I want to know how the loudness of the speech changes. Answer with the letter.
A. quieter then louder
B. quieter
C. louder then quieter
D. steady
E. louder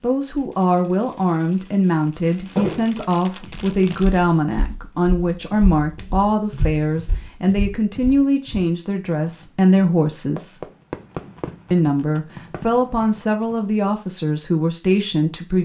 D.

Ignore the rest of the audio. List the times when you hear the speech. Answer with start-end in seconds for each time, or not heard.
0.0-10.7, 11.7-15.5.